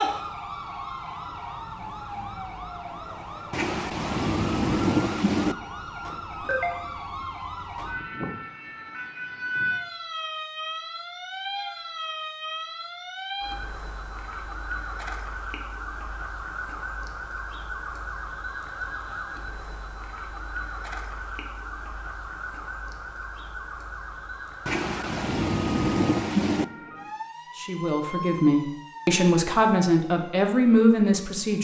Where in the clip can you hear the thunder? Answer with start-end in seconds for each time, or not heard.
3.5-5.5, 24.6-26.6.